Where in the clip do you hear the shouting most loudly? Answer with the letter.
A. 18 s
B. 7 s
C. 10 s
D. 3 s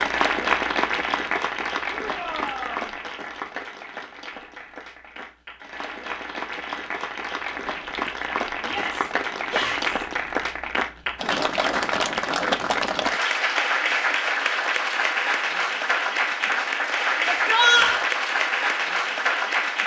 A.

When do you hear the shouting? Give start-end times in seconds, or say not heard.
1.9-2.9, 8.7-10.0, 17.2-18.1.